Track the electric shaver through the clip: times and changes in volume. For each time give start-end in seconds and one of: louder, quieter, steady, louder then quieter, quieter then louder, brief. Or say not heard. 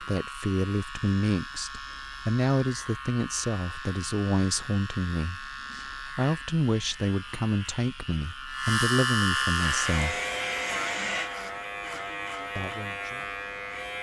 0.0-13.9 louder then quieter.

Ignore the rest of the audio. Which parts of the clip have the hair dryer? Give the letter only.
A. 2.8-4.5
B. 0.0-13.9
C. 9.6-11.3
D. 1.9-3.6
C.